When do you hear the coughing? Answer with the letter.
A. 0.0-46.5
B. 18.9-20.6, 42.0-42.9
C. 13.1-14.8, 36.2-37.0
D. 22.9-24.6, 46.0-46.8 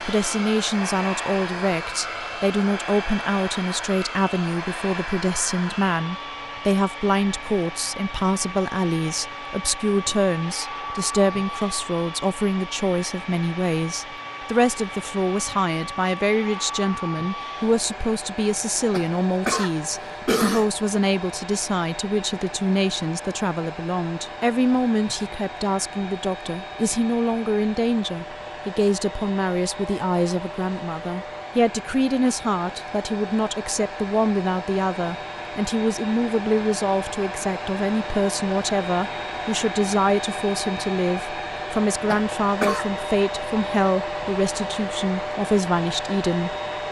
B.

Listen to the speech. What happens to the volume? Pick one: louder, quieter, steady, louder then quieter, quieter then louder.
steady.